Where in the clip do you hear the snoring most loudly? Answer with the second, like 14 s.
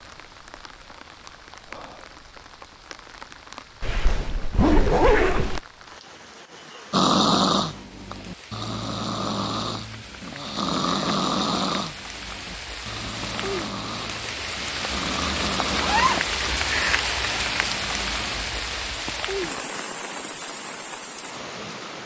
7 s.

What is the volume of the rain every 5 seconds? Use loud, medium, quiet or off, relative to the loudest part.
quiet, quiet, medium, loud, medium.